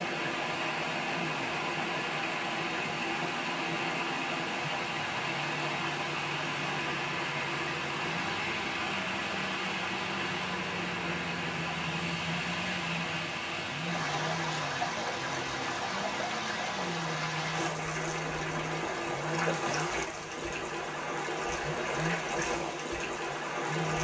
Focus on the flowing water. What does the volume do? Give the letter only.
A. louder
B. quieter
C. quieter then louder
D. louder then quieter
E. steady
E.